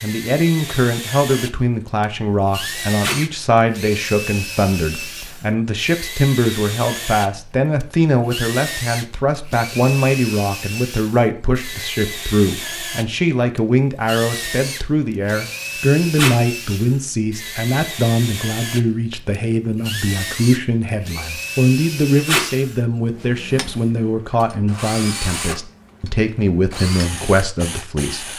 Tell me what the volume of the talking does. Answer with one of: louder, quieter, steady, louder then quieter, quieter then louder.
steady.